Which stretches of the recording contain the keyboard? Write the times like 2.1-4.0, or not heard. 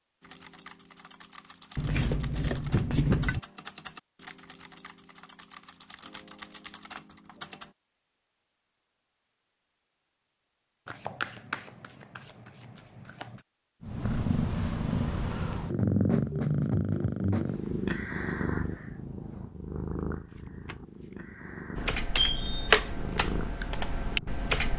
0.2-7.8, 21.8-24.7.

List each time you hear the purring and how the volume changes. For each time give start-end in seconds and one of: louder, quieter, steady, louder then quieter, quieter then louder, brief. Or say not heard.
13.8-24.5 quieter.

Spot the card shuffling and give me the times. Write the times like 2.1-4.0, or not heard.
1.8-3.4, 10.8-13.4, 20.3-21.1.